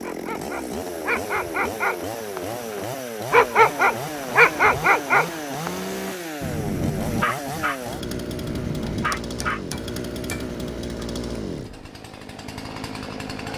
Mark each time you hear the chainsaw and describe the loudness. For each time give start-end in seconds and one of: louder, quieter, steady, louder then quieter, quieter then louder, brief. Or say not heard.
0.0-13.5 steady.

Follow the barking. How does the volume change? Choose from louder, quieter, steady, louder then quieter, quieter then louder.
louder then quieter.